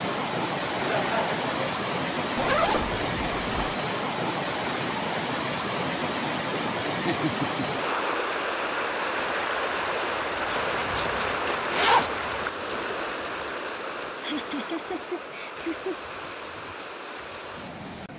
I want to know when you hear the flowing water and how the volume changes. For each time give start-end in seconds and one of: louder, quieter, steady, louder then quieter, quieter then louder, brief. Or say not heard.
0.0-18.1 quieter.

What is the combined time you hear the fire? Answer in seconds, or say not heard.
not heard.